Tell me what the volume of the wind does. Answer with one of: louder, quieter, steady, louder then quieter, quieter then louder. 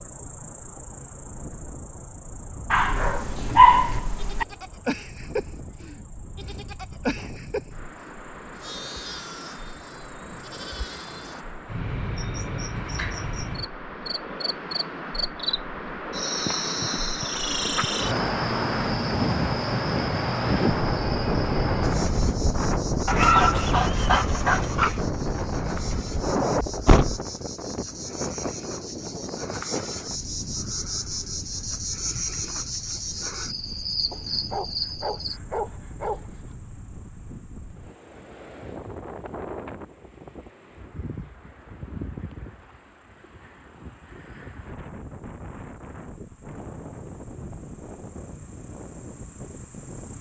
louder then quieter.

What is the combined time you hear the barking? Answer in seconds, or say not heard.
6 s.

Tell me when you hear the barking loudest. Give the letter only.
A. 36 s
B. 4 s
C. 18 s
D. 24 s
B.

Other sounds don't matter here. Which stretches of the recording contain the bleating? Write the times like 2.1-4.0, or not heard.
3.3-11.4.